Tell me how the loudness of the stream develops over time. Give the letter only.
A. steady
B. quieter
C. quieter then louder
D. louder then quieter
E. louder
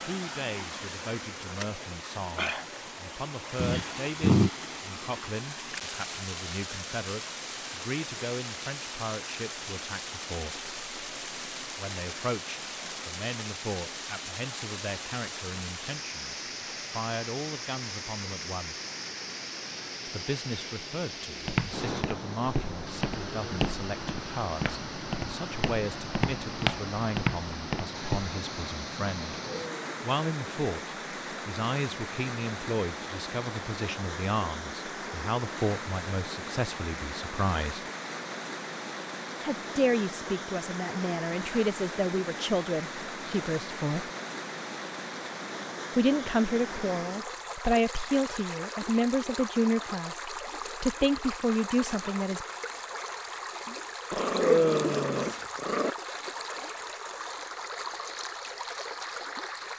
A.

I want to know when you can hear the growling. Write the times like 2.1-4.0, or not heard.
3.5-4.5, 29.4-30.1, 54.1-55.9.